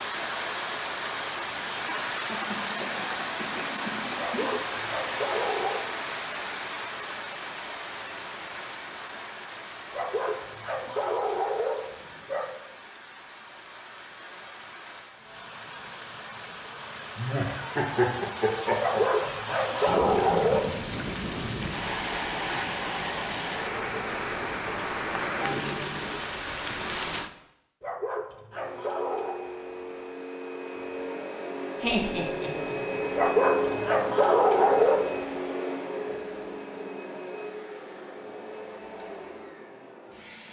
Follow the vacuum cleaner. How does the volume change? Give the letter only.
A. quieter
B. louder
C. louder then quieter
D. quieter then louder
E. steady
C.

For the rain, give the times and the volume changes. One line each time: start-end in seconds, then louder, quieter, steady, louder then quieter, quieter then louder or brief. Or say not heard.
0.0-27.3 quieter then louder.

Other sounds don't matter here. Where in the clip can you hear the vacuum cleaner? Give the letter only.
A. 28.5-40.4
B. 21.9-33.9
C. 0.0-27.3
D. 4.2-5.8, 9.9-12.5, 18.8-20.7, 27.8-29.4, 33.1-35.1
A.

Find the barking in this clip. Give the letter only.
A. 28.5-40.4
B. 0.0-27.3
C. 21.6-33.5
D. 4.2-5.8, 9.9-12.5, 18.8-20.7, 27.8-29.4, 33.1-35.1
D.